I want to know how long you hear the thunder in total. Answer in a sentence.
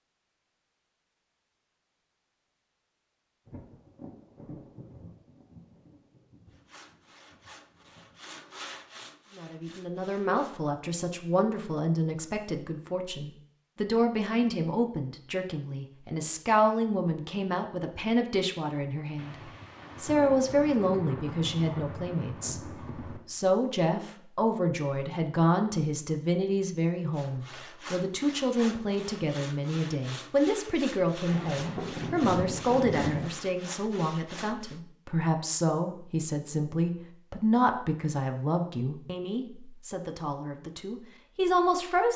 The thunder can be heard for 11 seconds in total.